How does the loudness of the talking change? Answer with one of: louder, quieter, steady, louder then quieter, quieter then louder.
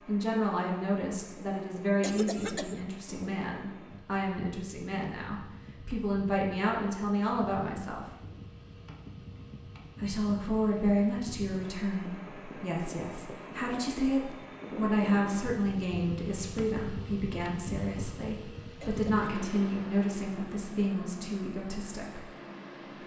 steady.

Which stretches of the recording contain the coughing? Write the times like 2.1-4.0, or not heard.
2.0-2.9, 18.8-19.3.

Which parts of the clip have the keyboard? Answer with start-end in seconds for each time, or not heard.
not heard.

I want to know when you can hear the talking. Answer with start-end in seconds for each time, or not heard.
0.1-8.1, 10.0-22.3.